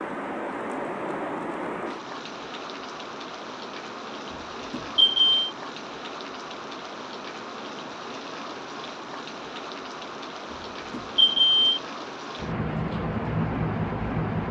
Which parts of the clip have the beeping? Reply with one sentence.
You can hear the beeping from 4.7 to 5.3 s and from 10.9 to 11.8 s.